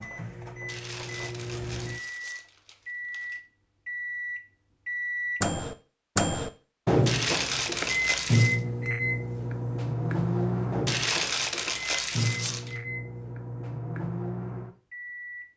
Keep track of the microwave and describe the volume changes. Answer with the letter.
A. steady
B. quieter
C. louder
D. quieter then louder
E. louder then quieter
E.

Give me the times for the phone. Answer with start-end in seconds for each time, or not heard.
not heard.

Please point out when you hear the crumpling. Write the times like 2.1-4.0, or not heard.
0.7-3.4, 7.0-8.6, 10.8-12.8.